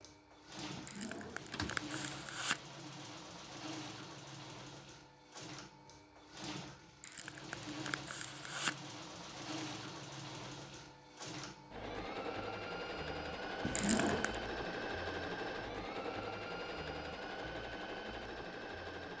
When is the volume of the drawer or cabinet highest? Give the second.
14 s.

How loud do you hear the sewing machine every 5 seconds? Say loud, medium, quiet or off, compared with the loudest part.
medium, medium, loud, loud.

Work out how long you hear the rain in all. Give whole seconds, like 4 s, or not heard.
not heard.